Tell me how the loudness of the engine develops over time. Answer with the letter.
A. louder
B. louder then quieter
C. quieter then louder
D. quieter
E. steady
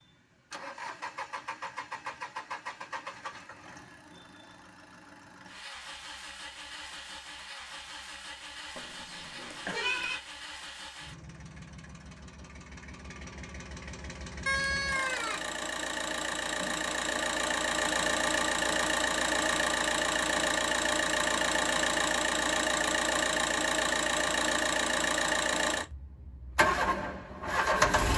A.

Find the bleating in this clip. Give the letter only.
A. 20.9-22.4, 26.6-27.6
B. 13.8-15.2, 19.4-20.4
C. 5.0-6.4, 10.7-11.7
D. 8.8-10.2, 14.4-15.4
D.